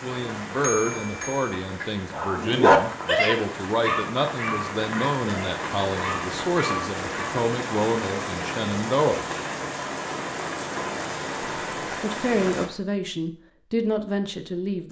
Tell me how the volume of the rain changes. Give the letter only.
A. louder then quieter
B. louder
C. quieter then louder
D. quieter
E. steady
B.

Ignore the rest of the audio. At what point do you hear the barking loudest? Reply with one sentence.
The volume of the barking peaks at 3 seconds.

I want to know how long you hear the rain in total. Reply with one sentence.
The rain can be heard for 13 seconds in total.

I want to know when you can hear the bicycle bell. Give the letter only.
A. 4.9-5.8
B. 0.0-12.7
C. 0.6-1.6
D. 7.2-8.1
C.